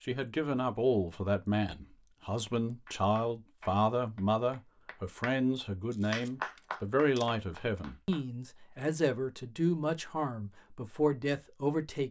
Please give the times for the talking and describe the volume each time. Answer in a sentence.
The talking can be heard from 0.1 to 12.0 s, at a steady volume.